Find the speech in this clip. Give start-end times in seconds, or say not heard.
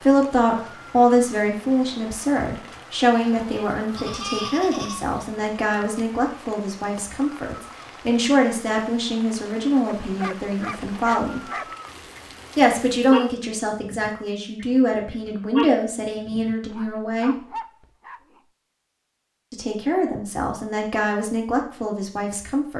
0.0-11.4, 12.6-17.4, 19.5-22.7.